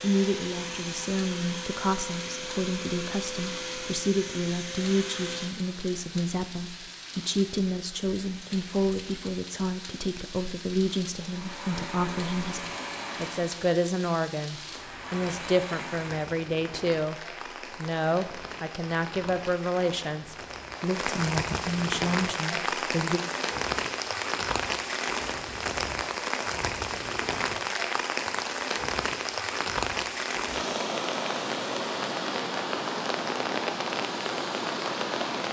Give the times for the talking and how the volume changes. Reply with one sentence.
You can hear the talking from 0.0 to 23.2 s, at a steady volume.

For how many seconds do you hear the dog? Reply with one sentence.
The dog can't be heard in this clip.